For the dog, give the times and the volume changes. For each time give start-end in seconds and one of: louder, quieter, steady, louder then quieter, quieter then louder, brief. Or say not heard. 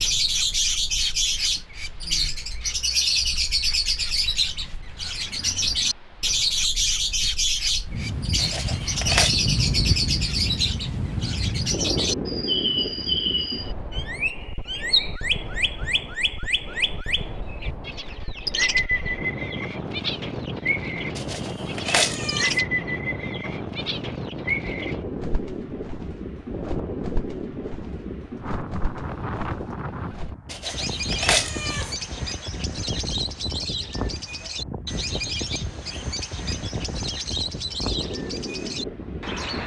not heard.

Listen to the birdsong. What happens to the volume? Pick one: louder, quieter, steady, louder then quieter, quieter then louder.
quieter.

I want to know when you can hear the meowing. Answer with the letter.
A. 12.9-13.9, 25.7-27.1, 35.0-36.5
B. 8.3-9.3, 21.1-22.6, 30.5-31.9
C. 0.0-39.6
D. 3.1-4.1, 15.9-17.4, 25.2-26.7
B.